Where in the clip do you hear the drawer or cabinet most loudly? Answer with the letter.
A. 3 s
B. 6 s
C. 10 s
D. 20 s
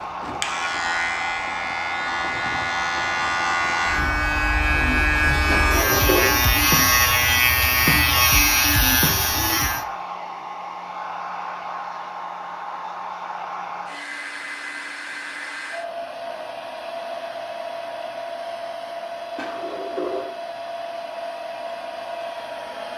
B.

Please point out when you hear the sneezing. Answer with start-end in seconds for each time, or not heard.
not heard.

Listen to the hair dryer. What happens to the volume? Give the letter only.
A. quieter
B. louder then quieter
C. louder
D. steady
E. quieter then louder
D.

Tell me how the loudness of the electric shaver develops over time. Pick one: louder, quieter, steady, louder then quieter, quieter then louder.
louder.